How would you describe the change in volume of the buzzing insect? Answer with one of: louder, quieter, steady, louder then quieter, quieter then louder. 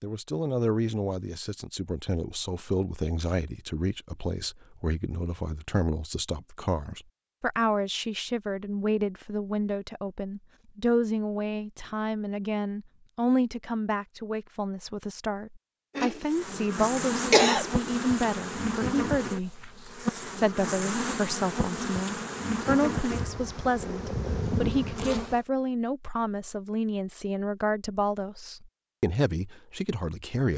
steady.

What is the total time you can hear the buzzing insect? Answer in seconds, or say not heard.
9 s.